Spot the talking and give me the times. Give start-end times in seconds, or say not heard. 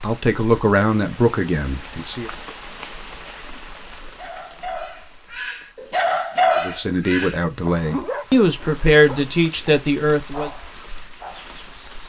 0.0-2.3, 6.6-10.5.